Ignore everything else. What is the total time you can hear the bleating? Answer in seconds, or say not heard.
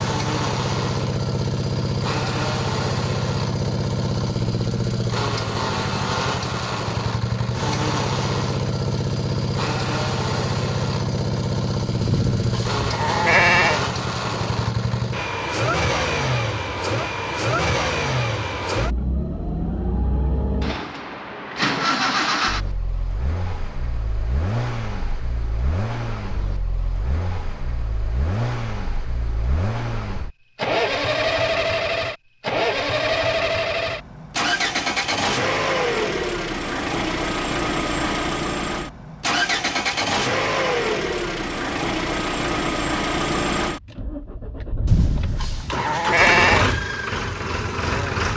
4 s.